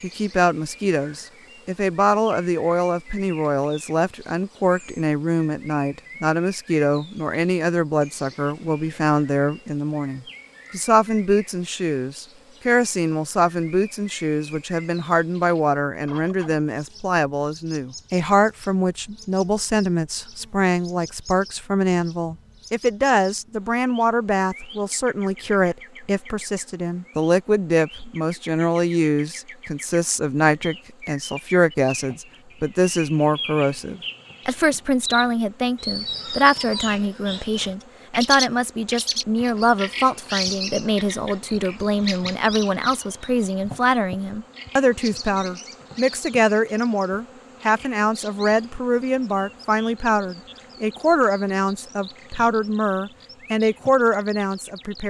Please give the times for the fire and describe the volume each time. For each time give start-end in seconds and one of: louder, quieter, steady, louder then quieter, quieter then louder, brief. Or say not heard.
not heard.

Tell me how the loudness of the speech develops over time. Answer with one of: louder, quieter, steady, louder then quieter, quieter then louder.
steady.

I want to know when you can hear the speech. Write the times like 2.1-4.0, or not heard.
0.0-55.0.